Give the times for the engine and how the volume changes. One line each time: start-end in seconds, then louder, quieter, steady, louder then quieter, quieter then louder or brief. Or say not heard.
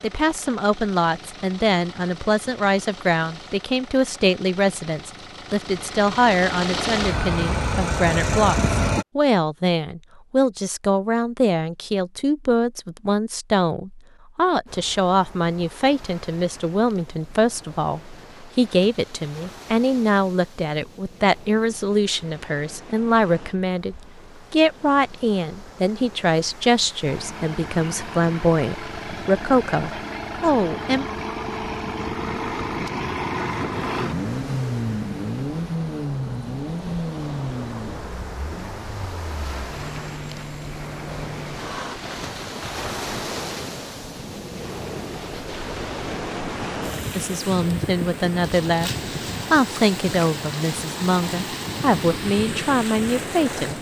0.0-9.1 louder
27.1-42.0 louder then quieter.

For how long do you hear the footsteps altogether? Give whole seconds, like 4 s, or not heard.
not heard.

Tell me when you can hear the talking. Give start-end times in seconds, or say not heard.
0.0-31.1, 47.1-53.7.